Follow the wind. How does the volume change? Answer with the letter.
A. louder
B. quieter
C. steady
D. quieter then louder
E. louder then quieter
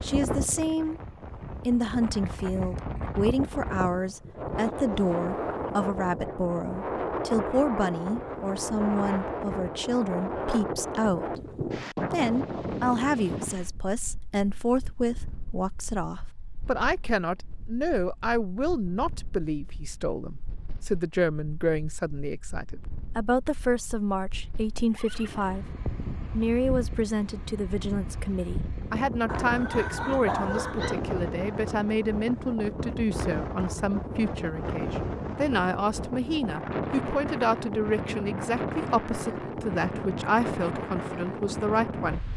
D.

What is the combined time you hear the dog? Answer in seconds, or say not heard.
2 s.